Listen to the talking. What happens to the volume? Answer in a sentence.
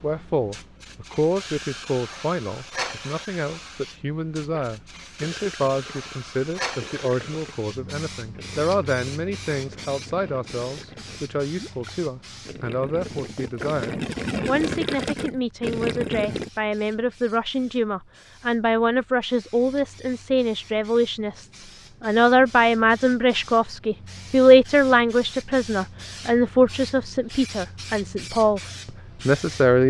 The loudness of the talking goes up.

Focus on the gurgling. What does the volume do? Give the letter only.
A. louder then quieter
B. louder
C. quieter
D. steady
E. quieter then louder
B.